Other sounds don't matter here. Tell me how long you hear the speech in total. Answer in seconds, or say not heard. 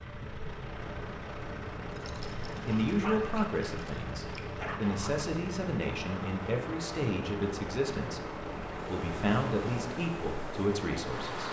9 s.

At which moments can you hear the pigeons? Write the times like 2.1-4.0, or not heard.
not heard.